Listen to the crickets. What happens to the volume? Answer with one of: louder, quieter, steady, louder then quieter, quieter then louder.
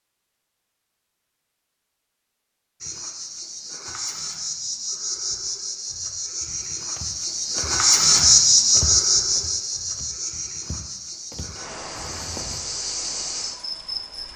louder then quieter.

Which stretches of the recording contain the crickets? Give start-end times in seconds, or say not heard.
2.8-14.3.